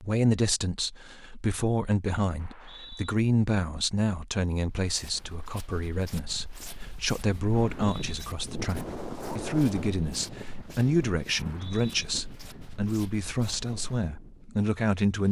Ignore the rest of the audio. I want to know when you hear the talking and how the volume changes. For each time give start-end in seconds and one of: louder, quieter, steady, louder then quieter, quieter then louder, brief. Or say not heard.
0.0-15.2 steady.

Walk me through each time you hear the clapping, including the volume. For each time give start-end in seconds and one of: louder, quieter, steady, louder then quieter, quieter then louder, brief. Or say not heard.
not heard.